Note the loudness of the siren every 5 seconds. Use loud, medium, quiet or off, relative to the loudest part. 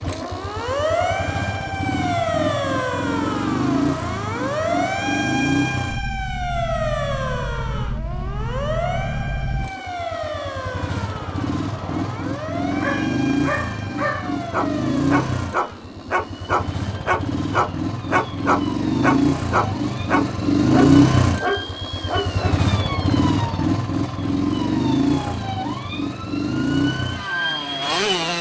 loud, loud, medium, quiet, medium, medium.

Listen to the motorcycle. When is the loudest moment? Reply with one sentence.
The volume of the motorcycle peaks at 21 seconds.